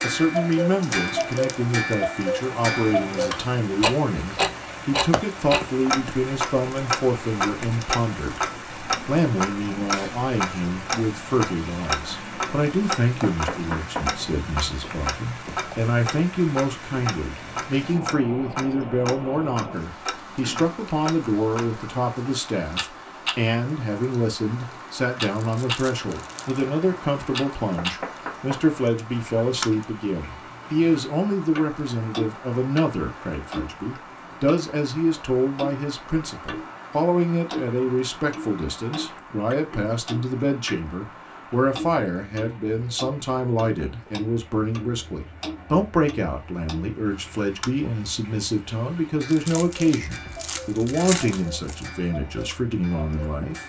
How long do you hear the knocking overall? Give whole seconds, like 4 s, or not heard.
2 s.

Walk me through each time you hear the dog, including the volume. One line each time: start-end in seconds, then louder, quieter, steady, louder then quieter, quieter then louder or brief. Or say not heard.
not heard.